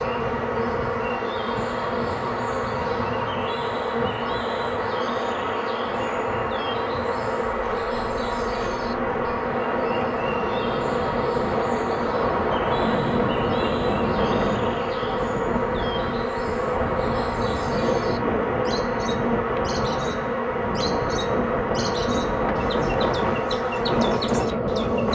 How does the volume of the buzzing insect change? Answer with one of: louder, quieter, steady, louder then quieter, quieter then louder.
steady.